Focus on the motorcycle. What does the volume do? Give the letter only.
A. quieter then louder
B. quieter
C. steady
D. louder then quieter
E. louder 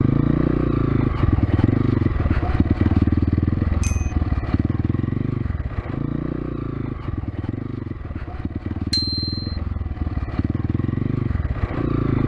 B.